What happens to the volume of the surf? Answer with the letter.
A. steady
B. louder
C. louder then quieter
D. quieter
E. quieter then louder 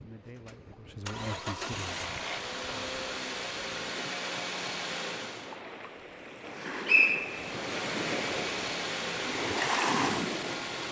B.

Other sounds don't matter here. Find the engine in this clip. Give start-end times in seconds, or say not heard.
0.1-5.6, 7.2-10.8.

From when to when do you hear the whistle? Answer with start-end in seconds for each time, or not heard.
6.5-7.6.